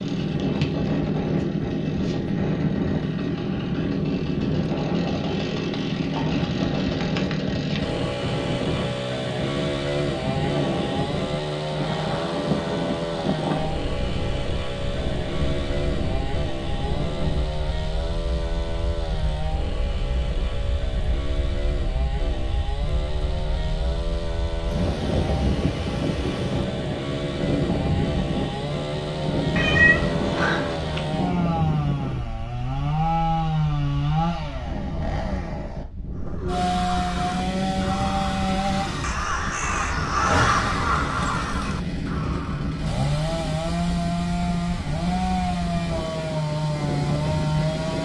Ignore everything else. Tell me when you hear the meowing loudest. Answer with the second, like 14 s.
30 s.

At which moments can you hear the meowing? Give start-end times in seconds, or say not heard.
29.6-31.1.